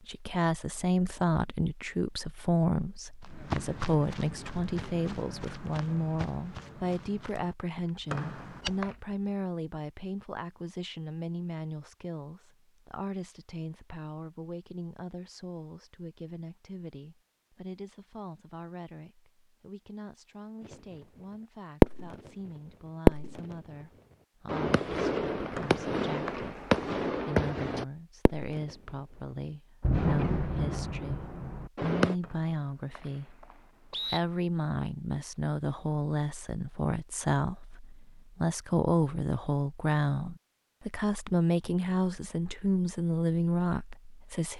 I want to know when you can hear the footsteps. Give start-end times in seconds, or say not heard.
3.2-9.2.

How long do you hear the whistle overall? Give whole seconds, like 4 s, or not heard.
4 s.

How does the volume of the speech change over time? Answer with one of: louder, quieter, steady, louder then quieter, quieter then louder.
quieter then louder.